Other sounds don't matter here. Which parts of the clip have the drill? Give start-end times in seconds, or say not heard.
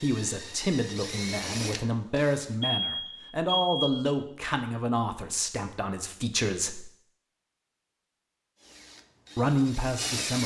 0.0-2.5, 8.6-10.4.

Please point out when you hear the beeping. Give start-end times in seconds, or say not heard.
2.6-4.0.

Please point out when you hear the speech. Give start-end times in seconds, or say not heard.
0.0-6.9, 9.3-10.4.